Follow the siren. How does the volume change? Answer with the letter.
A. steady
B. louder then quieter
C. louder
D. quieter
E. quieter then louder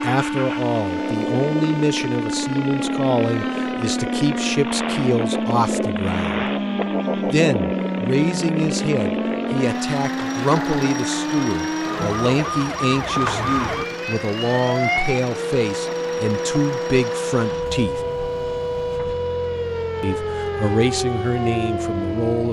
A.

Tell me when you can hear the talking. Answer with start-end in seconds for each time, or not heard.
0.0-6.5, 7.2-18.0, 20.0-22.4.